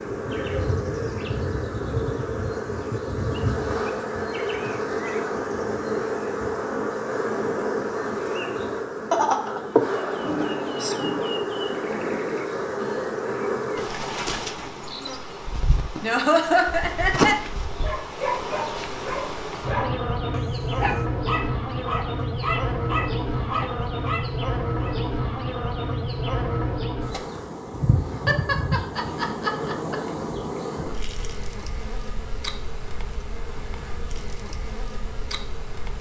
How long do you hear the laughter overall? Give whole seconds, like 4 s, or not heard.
4 s.